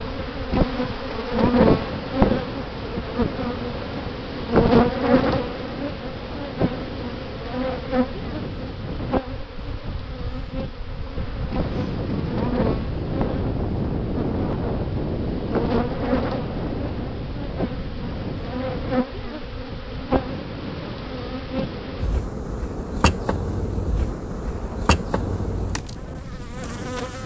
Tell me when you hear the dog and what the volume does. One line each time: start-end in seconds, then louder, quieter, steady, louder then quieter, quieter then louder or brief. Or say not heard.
not heard.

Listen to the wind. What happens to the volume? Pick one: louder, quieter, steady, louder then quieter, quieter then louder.
louder then quieter.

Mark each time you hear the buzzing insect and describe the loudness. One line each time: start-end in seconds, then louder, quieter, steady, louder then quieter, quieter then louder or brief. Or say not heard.
0.0-27.2 quieter.